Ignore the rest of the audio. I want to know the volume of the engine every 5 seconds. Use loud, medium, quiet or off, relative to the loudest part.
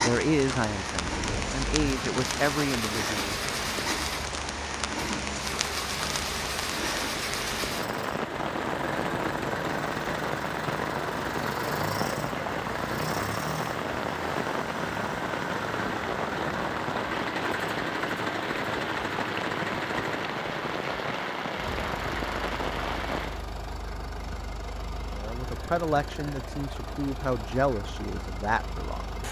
loud, loud, loud, loud, medium, medium.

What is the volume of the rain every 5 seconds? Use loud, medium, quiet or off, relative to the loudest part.
loud, loud, loud, loud, loud, off.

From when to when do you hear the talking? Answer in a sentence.
You can hear the talking from 0.0 to 3.4 s and from 25.1 to 29.2 s.